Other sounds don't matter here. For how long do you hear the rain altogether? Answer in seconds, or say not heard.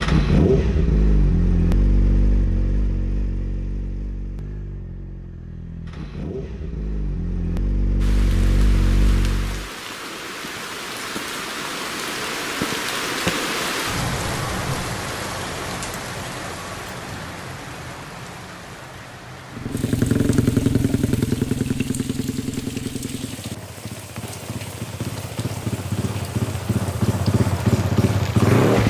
21 s.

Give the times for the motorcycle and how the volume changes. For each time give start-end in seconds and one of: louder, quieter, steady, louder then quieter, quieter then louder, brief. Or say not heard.
0.0-9.7 quieter then louder
19.5-28.8 quieter then louder.